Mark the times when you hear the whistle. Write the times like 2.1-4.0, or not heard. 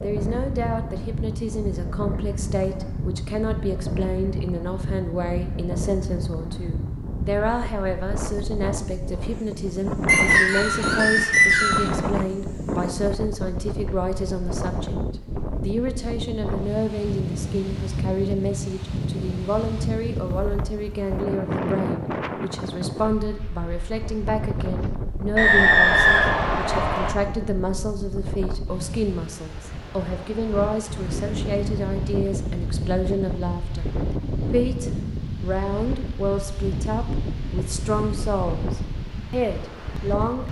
10.1-11.9, 25.4-27.1.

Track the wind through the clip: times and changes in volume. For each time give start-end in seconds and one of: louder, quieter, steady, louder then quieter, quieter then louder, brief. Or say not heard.
0.0-40.4 steady.